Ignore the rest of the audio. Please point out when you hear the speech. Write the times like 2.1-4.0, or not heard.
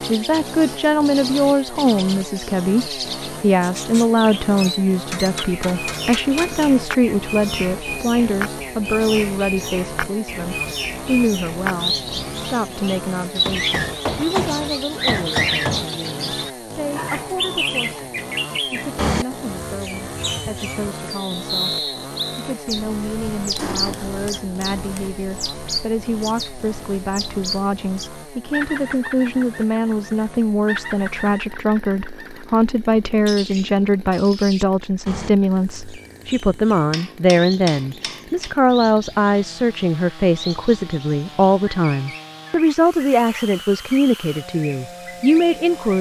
0.1-45.9.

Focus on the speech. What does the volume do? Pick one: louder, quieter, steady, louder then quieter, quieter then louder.
quieter then louder.